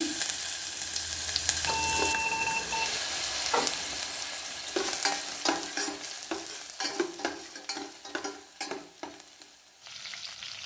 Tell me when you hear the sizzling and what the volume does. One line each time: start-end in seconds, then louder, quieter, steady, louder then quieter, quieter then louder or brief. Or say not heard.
0.0-10.6 quieter.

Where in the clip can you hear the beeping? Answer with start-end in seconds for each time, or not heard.
1.6-3.0.